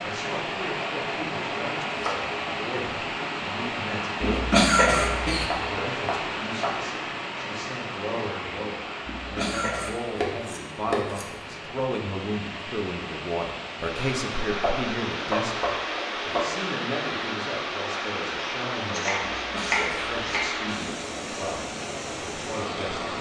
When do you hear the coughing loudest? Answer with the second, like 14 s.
5 s.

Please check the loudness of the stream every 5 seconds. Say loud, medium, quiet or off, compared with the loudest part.
loud, loud, medium, loud, loud.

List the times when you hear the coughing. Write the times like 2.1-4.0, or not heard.
4.2-5.5, 9.1-10.0, 19.4-20.5.